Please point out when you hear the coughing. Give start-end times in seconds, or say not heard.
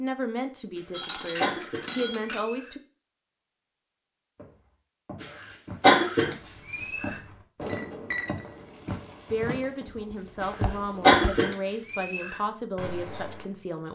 1.4-2.7, 5.2-7.2, 10.4-12.3.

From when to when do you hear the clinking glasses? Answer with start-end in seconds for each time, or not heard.
0.9-2.5, 7.7-8.6.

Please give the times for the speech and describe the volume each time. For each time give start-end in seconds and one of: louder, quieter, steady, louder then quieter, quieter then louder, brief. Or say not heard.
0.0-2.8 brief
9.3-13.9 steady.